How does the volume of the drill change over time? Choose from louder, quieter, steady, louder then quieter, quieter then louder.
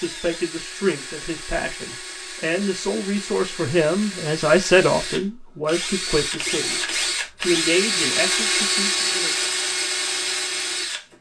louder.